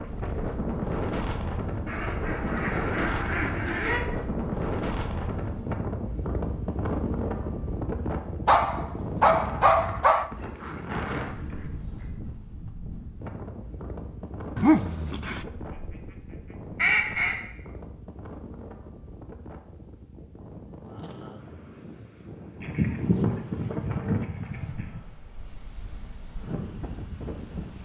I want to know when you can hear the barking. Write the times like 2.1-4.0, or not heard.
8.4-10.3, 14.6-15.4.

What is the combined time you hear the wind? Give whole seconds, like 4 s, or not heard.
28 s.